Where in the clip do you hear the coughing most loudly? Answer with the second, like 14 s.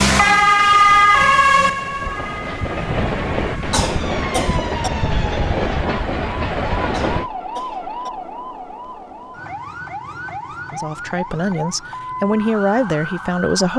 4 s.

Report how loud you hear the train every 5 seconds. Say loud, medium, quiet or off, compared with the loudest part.
loud, loud, off.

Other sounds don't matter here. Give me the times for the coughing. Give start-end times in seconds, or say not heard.
3.7-4.9, 6.9-8.1.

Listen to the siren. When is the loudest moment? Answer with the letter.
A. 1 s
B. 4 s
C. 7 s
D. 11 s
A.